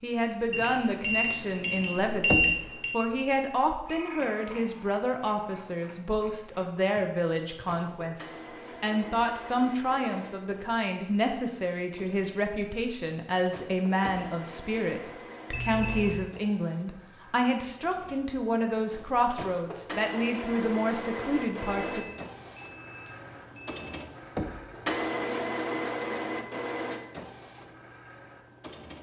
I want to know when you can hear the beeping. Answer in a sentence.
You can hear the beeping from 0.5 to 3.0 s, from 15.5 to 16.2 s and from 21.6 to 23.9 s.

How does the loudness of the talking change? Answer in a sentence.
The loudness of the talking stays about the same.